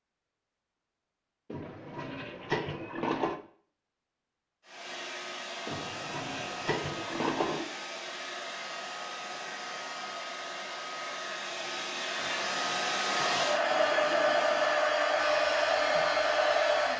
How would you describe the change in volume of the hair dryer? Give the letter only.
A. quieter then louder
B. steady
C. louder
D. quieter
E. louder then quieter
C.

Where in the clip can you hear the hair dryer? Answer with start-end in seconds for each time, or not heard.
4.7-16.9.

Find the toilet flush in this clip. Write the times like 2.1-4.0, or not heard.
1.5-3.4, 5.7-7.7, 12.2-14.8.